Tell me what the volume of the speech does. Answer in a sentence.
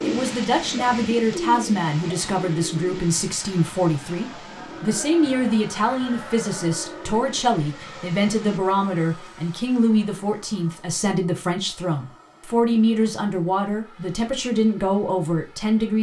The loudness of the speech stays about the same.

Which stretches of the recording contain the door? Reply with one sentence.
The door can't be heard in this clip.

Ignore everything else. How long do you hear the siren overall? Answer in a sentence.
The siren can't be heard in this clip.